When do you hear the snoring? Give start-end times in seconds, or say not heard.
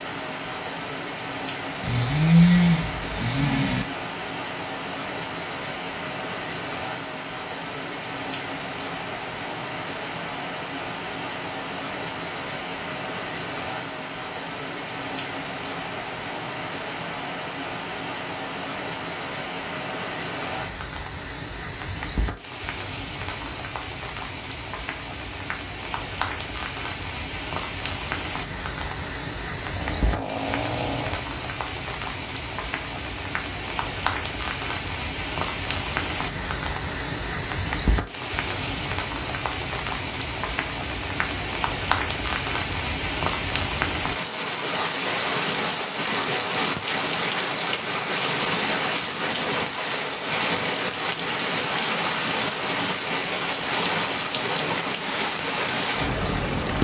1.8-3.9, 29.6-31.4.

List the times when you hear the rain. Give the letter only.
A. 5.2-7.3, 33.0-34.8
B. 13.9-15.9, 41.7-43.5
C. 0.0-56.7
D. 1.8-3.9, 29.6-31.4
C.